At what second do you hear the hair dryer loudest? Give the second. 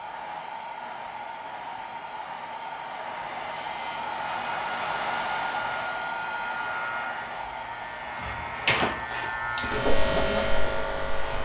5 s.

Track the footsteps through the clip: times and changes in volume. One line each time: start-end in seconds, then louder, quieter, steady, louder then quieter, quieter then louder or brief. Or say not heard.
not heard.